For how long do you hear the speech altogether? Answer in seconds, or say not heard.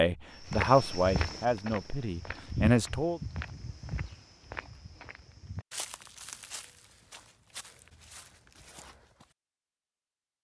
3 s.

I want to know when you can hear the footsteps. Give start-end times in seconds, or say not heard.
0.5-9.3.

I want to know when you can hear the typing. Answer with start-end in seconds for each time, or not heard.
not heard.